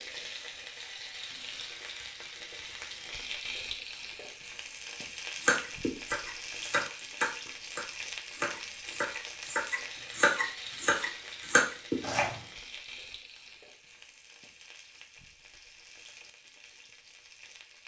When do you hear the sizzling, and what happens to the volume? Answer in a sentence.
The sizzling can be heard from 0.0 to 17.8 s, getting quieter.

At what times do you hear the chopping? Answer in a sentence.
You can hear the chopping from 5.3 to 12.3 s.